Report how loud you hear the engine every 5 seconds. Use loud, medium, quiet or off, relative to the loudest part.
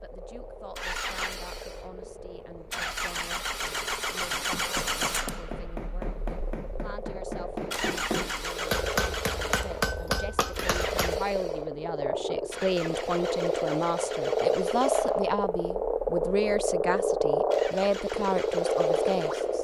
loud, loud, medium, medium.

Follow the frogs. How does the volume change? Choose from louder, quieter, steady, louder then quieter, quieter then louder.
louder.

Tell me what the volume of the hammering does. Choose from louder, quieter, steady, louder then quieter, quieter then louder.
louder.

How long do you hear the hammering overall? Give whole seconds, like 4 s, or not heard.
7 s.